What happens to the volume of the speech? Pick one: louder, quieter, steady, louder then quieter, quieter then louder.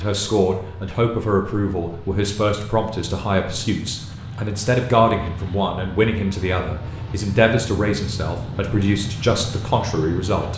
steady.